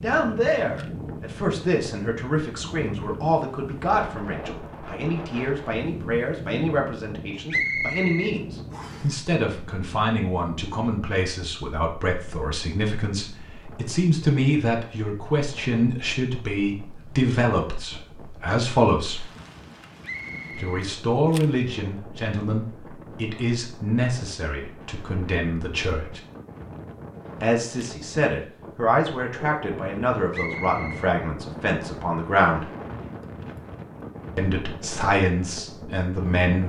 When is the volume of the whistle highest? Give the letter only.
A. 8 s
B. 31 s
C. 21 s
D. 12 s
A.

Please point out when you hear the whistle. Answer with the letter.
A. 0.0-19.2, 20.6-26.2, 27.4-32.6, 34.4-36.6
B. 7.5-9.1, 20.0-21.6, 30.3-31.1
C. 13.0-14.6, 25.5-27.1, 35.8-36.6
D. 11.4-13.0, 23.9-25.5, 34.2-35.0
B.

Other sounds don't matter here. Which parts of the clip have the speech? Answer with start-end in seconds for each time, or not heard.
0.0-19.2, 20.6-26.2, 27.4-32.6, 34.4-36.6.